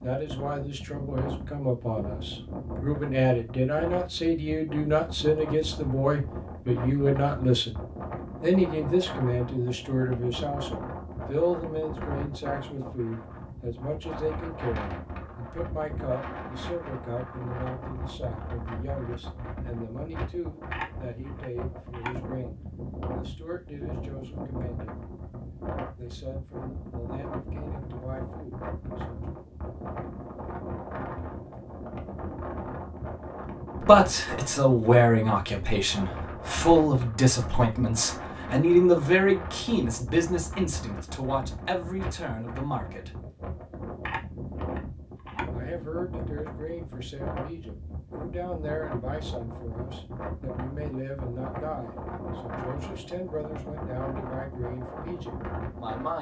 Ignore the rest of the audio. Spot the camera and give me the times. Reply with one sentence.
The camera can be heard from 20.7 to 22.1 s and from 44.0 to 45.5 s.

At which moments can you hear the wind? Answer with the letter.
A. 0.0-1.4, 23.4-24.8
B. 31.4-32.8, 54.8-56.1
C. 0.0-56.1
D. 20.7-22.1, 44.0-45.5
C.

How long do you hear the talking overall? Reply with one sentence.
You can hear the talking for 48 seconds altogether.